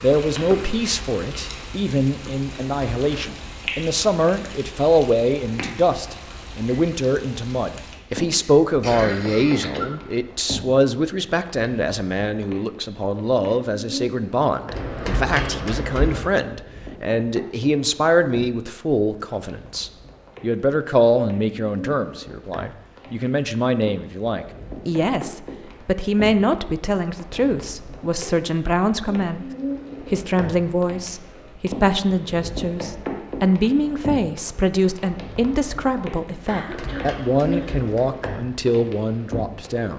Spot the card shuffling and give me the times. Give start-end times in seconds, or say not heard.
2.5-3.5, 14.7-16.2, 36.5-38.0.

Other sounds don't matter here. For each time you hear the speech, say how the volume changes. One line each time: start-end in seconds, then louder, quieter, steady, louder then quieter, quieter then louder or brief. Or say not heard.
0.0-29.4 steady
30.1-39.9 steady.